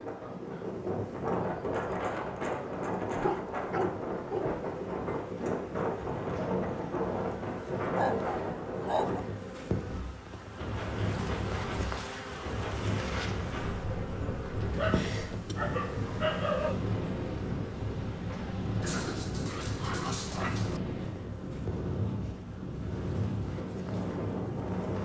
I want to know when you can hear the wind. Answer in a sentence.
The wind can be heard from 0.0 to 25.0 s.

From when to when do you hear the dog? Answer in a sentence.
The dog can be heard from 3.1 to 4.6 s, from 8.0 to 9.2 s, from 14.7 to 16.8 s and from 18.8 to 20.8 s.